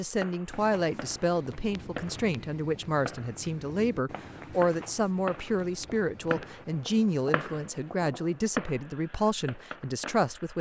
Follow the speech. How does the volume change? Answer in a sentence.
The loudness of the speech stays about the same.